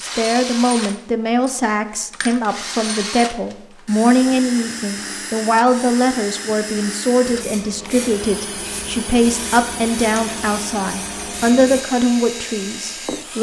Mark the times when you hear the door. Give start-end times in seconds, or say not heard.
not heard.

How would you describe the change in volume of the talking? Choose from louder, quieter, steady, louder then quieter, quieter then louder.
steady.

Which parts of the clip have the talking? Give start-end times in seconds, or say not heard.
0.0-13.3.